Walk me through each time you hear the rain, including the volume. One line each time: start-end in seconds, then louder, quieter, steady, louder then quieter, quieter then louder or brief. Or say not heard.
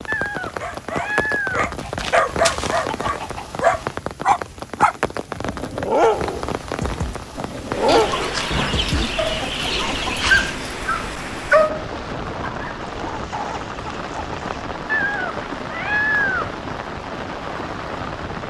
0.0-18.4 steady.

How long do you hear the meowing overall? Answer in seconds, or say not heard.
3 s.